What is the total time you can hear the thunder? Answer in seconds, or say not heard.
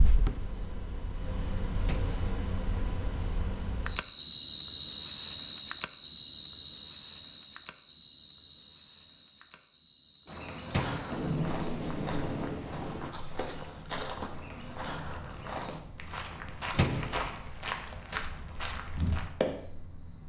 2 s.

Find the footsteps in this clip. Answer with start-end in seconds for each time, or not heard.
10.2-19.6.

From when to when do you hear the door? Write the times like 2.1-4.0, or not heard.
1.8-2.2, 10.7-11.2, 16.7-17.2.